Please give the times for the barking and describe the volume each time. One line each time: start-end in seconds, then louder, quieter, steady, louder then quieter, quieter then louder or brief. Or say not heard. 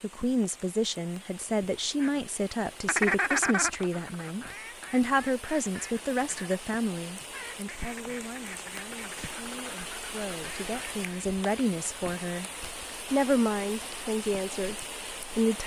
not heard.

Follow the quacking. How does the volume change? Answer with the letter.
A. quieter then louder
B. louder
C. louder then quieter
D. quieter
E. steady
D.